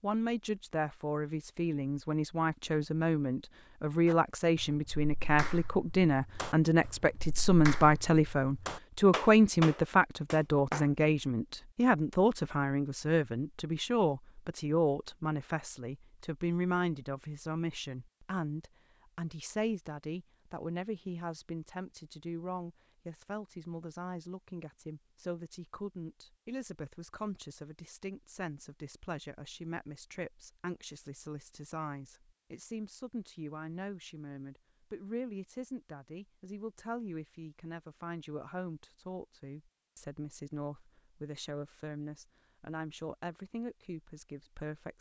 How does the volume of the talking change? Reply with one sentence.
The loudness of the talking goes down.